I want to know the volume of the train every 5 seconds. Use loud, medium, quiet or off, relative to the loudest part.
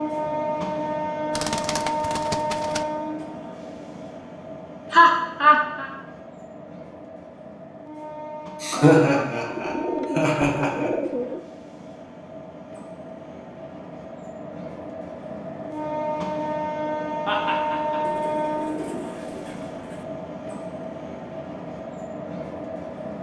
loud, medium, medium, loud, medium.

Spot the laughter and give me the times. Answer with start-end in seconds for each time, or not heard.
4.9-5.9, 8.6-10.9, 17.2-18.0.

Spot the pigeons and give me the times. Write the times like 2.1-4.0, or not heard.
1.3-2.9, 8.7-11.4, 18.0-20.1.